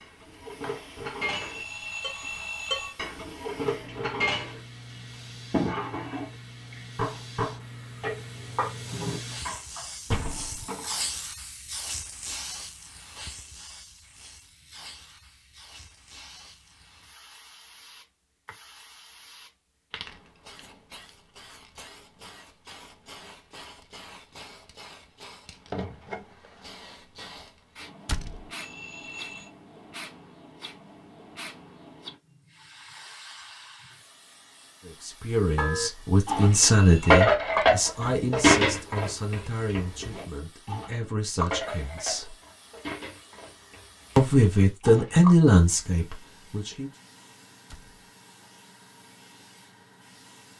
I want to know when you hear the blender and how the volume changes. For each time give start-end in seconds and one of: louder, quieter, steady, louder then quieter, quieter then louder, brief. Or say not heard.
not heard.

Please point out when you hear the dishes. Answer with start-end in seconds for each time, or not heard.
0.0-10.9, 35.5-45.1.